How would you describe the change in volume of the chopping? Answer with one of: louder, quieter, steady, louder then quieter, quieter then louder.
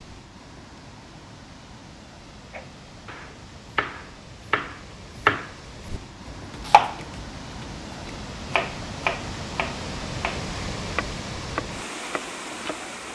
louder then quieter.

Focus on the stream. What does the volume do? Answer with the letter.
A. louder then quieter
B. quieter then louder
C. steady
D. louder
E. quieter
D.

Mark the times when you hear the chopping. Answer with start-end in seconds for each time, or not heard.
2.5-12.8.